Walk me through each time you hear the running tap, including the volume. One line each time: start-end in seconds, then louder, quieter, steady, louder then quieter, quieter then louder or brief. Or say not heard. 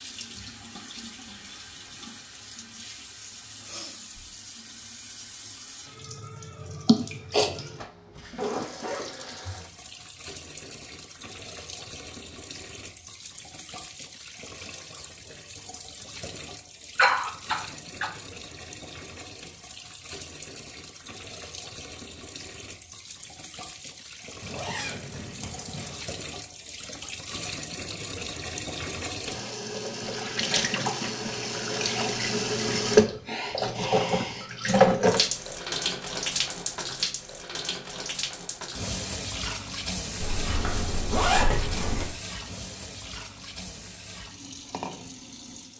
0.0-45.7 louder then quieter.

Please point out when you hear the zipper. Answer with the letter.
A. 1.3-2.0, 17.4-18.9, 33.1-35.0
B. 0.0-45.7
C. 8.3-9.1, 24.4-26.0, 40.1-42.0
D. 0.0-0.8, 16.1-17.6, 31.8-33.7
C.